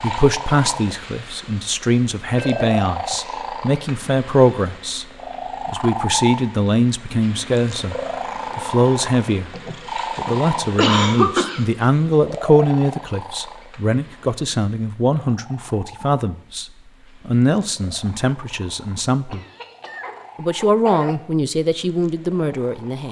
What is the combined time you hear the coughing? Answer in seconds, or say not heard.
5 s.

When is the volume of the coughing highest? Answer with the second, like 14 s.
11 s.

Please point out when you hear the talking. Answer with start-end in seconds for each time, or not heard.
0.0-5.0, 5.7-8.0, 8.6-9.5, 10.2-16.6, 17.2-19.4, 20.4-23.0.